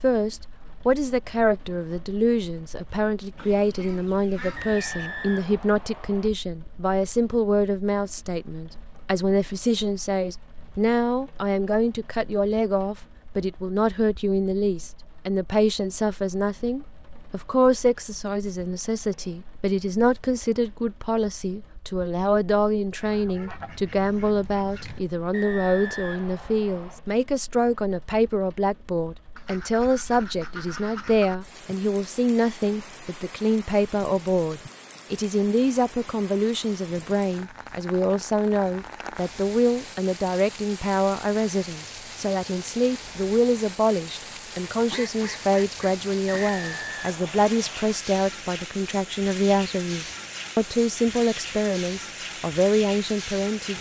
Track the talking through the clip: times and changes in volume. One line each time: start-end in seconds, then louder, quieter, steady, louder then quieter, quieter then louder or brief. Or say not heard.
0.0-53.7 steady.